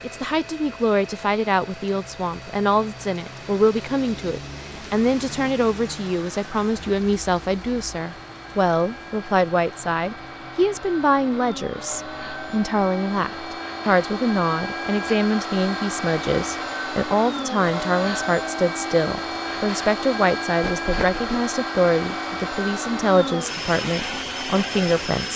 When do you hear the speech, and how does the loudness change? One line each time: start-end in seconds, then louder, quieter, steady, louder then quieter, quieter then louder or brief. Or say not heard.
0.0-25.3 steady.